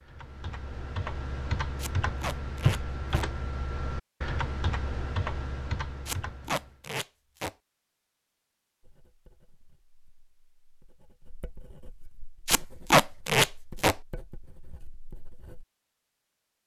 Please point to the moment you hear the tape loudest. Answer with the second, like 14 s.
13 s.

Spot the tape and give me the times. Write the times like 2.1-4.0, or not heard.
1.8-3.2, 6.0-7.5, 12.4-13.9.